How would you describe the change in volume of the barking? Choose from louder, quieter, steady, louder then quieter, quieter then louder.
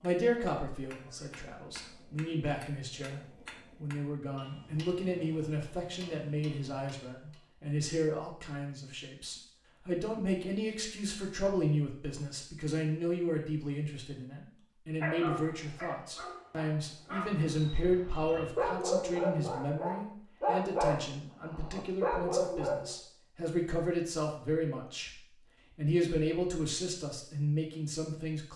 louder.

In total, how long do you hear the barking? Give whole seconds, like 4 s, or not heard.
8 s.